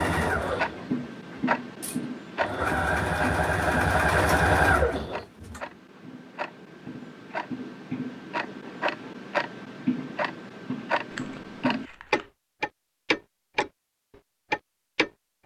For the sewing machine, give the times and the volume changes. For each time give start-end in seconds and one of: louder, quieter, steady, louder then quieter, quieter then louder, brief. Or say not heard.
0.0-5.6 quieter then louder.